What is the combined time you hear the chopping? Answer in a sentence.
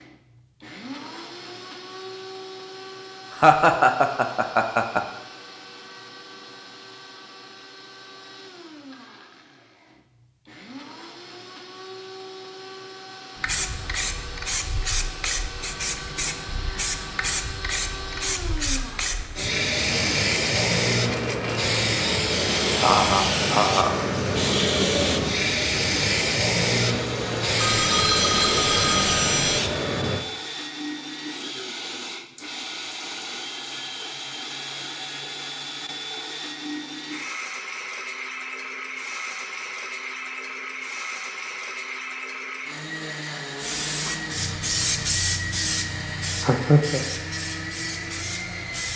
You can't hear the chopping here.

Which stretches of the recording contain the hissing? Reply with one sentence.
The hissing can be heard from 13.4 to 30.2 s and from 43.5 to 48.9 s.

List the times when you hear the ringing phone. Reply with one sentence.
The ringing phone can be heard from 27.6 to 29.6 s.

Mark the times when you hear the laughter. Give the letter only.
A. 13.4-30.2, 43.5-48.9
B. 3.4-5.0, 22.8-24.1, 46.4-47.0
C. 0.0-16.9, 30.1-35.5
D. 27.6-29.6
B.